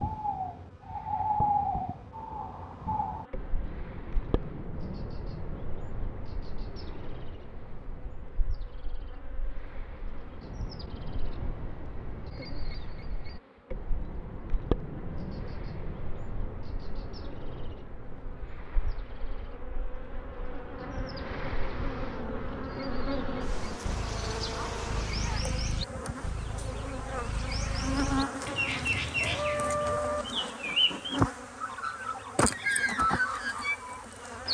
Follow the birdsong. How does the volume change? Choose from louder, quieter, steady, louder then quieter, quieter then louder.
quieter then louder.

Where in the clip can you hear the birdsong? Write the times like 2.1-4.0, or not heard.
0.0-34.4.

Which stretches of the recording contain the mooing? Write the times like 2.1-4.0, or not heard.
28.9-30.2.